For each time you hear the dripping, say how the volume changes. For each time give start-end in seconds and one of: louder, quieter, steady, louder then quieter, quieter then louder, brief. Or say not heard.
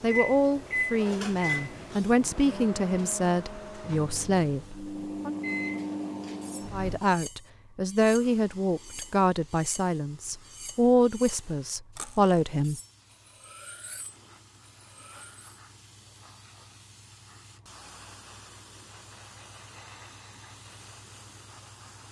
not heard.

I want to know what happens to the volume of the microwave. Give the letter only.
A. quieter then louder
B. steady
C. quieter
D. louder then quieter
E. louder
A.